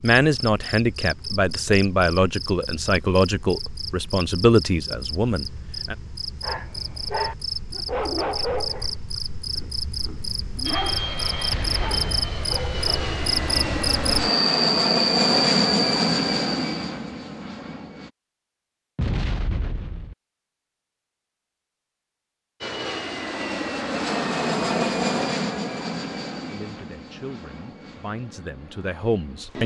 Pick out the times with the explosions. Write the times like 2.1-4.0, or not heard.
11.5-12.3, 18.9-20.1.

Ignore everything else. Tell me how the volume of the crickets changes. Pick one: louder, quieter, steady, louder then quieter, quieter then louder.
louder.